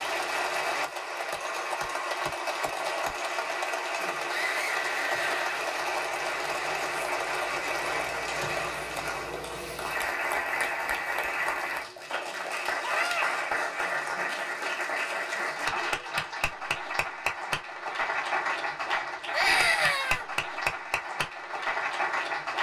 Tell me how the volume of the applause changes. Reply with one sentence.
The volume of the applause stays about the same.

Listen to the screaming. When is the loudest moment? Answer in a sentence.
The volume of the screaming peaks at 20 seconds.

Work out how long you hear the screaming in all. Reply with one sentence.
You can hear the screaming for 3 seconds altogether.